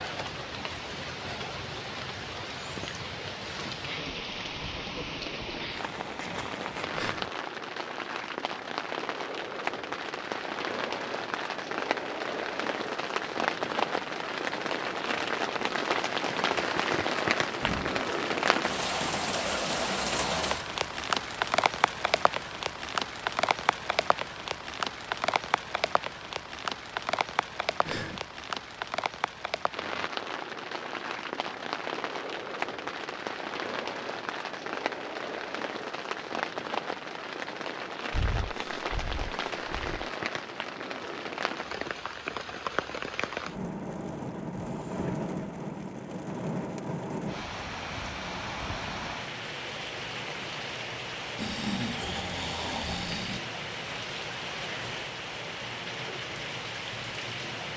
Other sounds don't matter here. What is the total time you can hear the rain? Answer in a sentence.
You can hear the rain for 58 seconds altogether.